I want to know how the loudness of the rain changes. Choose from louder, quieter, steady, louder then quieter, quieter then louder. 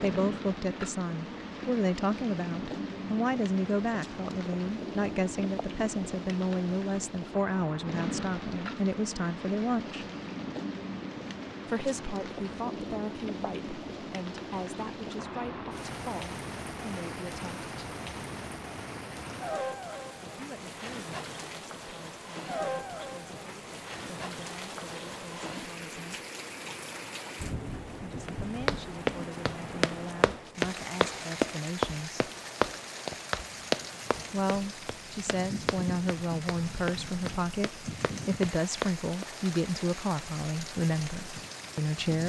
steady.